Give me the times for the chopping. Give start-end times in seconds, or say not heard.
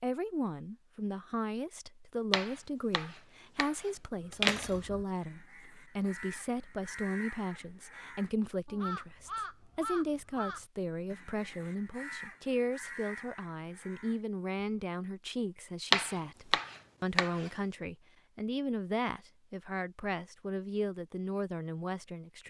2.3-4.8, 15.9-17.5.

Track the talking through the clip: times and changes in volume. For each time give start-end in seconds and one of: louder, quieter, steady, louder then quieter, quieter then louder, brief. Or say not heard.
0.0-22.4 steady.